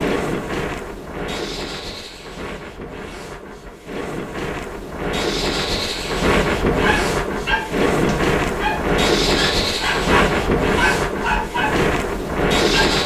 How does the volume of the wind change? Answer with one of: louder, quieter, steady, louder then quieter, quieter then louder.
louder.